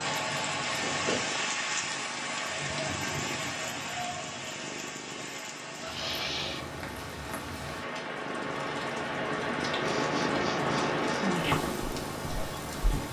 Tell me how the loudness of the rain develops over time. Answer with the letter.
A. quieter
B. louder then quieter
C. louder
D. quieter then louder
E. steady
D.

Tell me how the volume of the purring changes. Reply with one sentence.
The volume of the purring goes up.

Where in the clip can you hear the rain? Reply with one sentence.
The rain can be heard from 0.0 to 13.0 s.